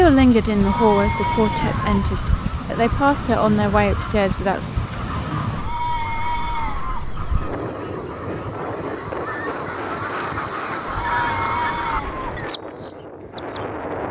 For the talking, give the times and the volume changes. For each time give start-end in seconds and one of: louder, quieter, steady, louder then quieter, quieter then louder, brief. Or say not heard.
0.0-4.7 quieter then louder.